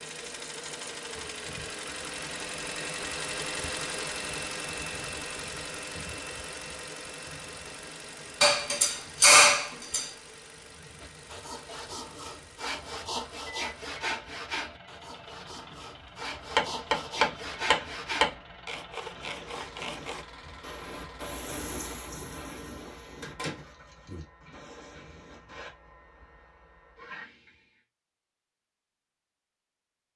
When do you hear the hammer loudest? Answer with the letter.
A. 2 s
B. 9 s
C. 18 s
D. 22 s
B.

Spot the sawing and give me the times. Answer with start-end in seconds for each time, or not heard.
11.0-20.2.